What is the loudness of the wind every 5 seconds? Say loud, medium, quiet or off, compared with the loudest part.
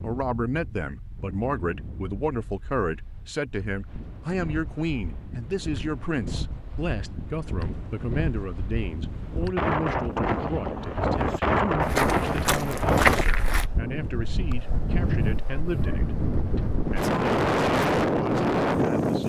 quiet, medium, loud, loud.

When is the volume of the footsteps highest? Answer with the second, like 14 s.
13 s.